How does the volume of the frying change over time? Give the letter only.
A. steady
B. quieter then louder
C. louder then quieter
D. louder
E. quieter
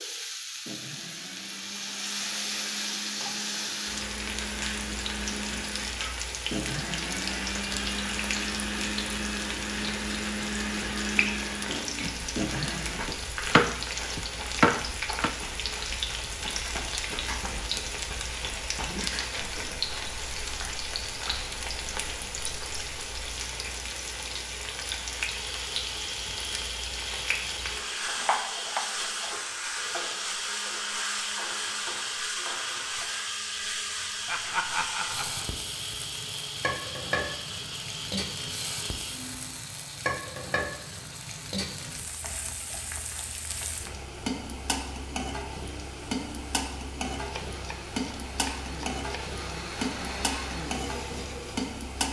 A.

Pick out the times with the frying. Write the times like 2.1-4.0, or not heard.
0.0-52.0.